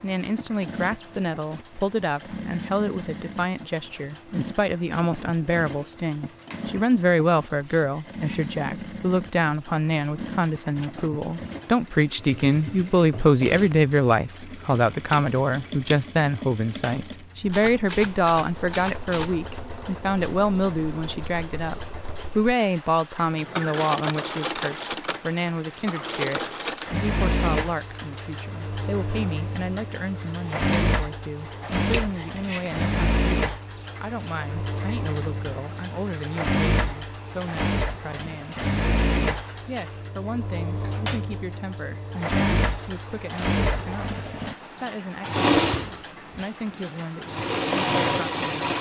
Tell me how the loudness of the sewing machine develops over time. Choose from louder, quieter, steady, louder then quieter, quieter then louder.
louder.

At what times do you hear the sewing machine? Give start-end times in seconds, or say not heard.
0.0-48.7.